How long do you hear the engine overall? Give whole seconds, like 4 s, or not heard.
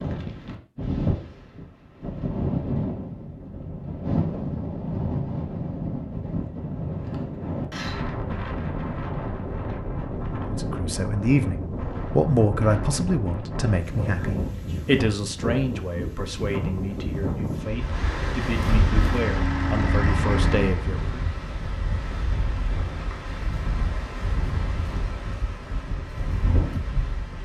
2 s.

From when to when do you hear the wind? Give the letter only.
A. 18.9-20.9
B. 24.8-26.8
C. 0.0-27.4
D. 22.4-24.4
C.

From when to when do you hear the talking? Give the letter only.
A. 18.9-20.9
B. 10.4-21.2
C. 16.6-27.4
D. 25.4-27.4
B.